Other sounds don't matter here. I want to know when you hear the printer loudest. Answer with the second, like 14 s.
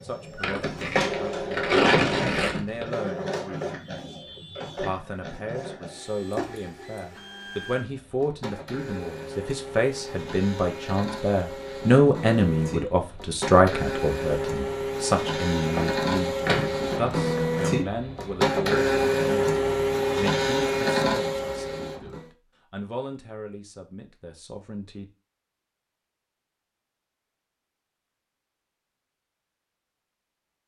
19 s.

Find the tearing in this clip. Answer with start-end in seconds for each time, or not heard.
0.4-2.9, 15.7-17.6.